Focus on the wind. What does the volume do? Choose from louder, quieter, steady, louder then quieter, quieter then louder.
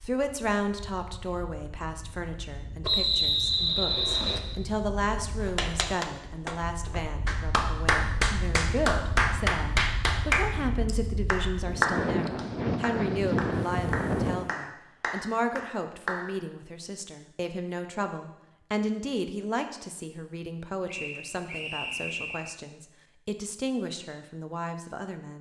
louder.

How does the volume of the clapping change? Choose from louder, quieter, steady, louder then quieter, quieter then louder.
louder then quieter.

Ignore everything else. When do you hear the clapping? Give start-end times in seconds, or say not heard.
5.5-16.3.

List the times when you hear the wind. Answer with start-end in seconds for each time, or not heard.
0.0-14.6.